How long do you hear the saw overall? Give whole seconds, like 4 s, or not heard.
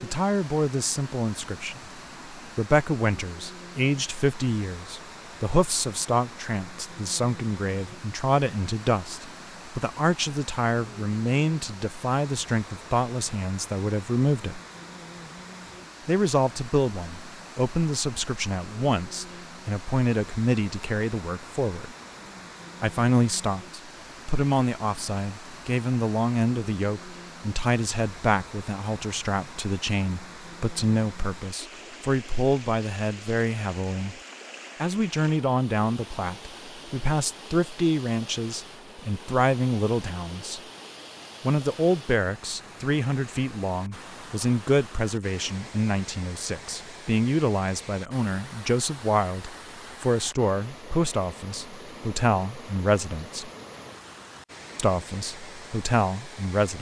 not heard.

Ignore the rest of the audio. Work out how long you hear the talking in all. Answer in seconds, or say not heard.
52 s.